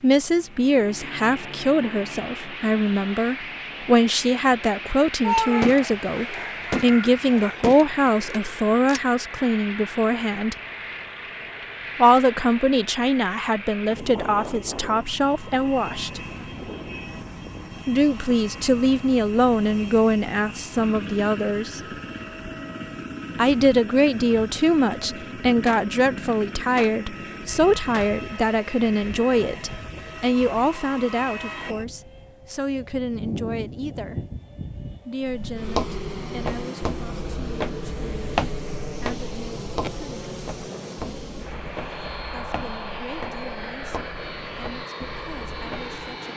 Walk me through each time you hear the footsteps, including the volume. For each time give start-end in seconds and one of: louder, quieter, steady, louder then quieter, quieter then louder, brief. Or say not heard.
35.2-46.0 quieter.